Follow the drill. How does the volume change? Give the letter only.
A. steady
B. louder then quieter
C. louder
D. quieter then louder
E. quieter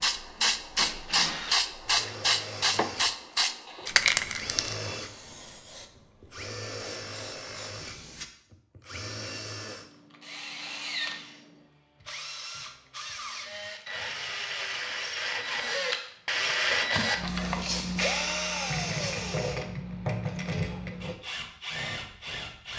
C.